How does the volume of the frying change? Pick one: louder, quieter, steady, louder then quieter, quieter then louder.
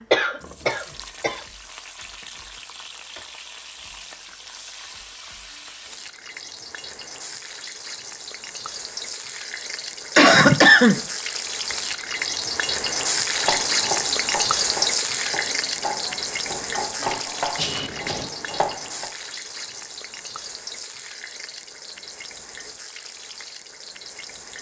louder then quieter.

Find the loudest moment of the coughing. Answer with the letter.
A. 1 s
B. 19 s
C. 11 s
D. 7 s
C.